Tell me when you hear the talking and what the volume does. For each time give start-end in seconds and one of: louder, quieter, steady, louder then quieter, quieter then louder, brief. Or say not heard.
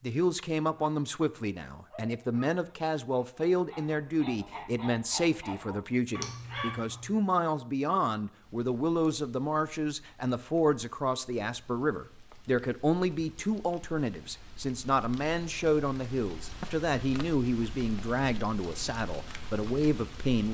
0.0-20.4 steady.